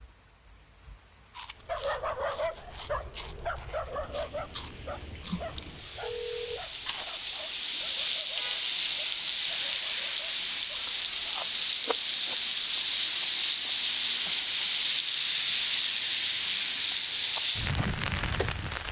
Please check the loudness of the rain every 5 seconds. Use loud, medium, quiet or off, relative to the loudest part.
quiet, loud, loud, loud.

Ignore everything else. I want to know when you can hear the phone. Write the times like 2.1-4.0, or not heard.
5.2-6.6.